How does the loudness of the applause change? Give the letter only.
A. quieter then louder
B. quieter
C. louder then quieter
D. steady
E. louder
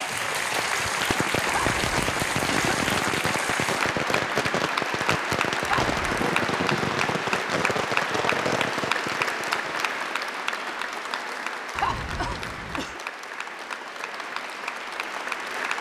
B.